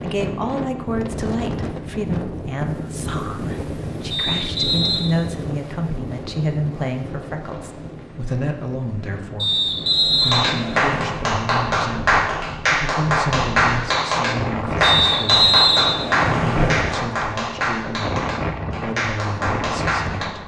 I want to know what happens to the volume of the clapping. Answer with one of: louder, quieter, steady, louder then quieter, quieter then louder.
quieter.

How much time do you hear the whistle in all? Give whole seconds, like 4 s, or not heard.
5 s.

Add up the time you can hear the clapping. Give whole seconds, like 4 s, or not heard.
10 s.